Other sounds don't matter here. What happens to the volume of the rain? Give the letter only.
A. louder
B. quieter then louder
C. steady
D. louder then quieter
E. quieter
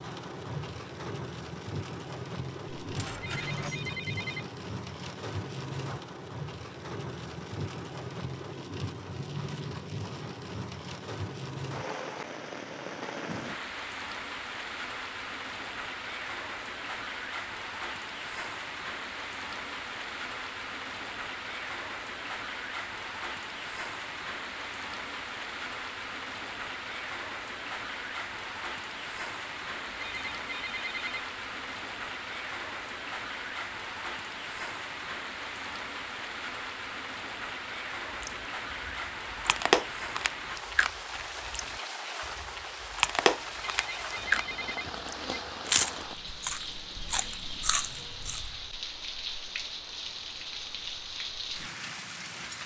C.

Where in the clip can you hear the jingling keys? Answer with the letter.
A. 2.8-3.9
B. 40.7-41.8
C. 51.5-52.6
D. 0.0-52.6
A.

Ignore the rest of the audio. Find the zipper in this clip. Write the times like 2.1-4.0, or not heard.
not heard.